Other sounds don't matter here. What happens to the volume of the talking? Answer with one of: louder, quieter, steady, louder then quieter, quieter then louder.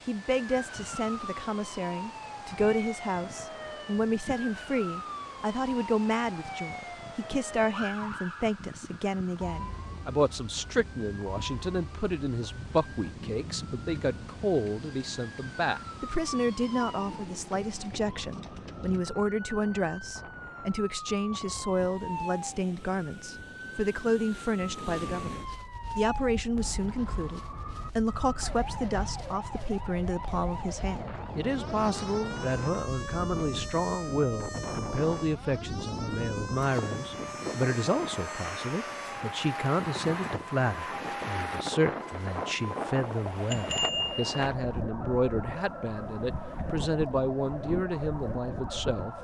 steady.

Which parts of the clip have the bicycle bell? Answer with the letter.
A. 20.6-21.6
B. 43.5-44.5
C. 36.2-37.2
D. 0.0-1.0
B.